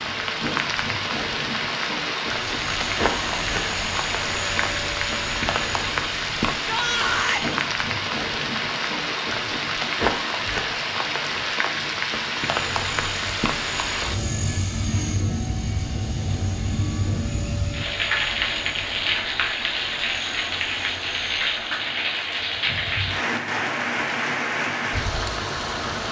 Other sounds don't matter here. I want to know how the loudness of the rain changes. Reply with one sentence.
The loudness of the rain stays about the same.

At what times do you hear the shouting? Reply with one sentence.
The shouting can be heard from 6.6 to 7.5 s.